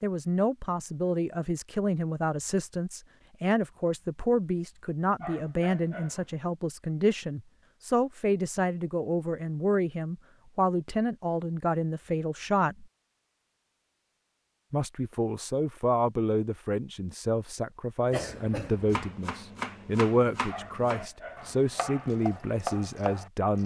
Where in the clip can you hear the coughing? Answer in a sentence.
You can hear the coughing from 18.1 to 19.1 s.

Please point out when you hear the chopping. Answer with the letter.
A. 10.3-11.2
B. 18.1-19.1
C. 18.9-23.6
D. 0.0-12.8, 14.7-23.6
C.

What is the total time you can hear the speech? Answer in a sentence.
You can hear the speech for 22 seconds altogether.